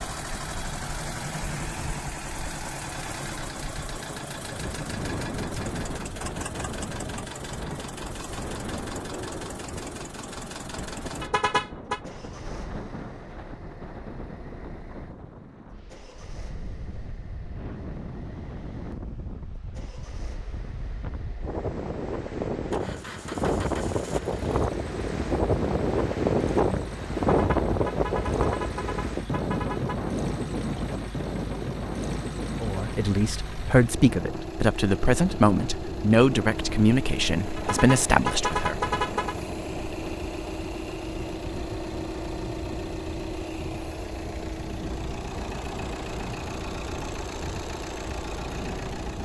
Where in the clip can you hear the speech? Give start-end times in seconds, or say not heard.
32.6-38.8.